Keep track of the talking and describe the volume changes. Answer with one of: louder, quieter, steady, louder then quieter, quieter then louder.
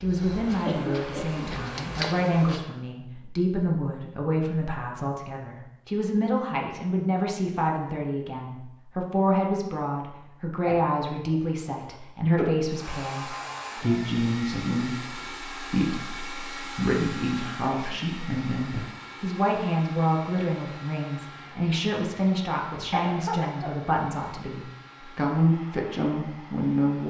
steady.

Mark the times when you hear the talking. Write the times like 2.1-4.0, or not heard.
0.0-27.0.